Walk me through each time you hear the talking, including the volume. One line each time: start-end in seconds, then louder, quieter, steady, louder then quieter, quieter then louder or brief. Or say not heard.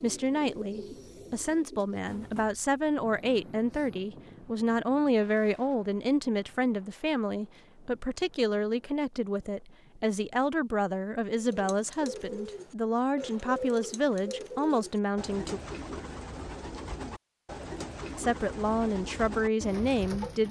0.0-15.6 steady
18.1-20.4 brief.